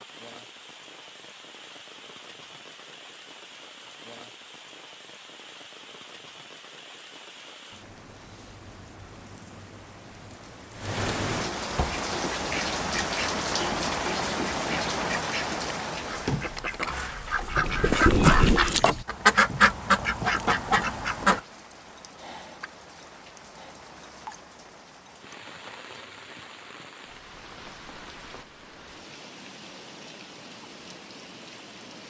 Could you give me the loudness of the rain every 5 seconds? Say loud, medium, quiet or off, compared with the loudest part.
quiet, quiet, loud, loud, quiet, quiet, quiet.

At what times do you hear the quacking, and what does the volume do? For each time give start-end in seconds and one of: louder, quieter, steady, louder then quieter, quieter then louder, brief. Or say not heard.
11.8-21.4 louder.